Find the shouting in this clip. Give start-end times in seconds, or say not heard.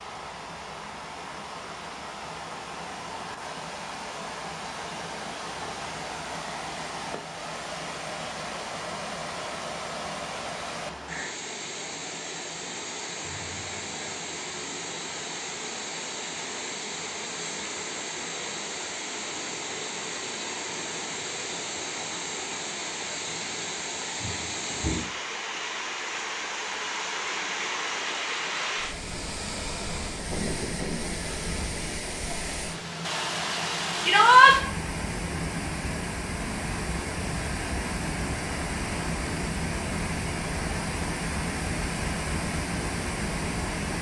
34.0-34.5.